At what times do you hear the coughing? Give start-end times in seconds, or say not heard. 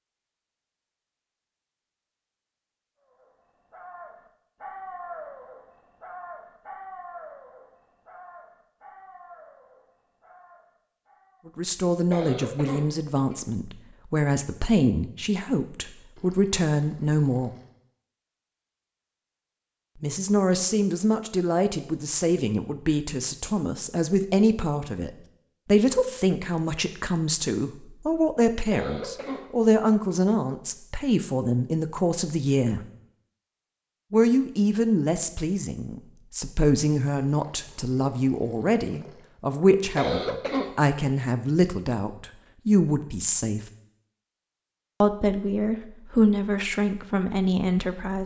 12.1-13.4, 28.7-29.4, 40.0-41.0.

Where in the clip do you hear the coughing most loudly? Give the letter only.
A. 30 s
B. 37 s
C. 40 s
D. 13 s
C.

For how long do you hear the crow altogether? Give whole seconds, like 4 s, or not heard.
not heard.